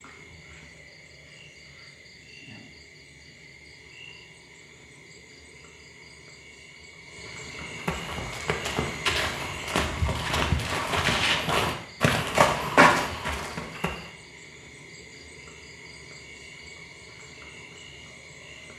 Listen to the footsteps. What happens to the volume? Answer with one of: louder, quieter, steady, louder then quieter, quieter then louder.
louder.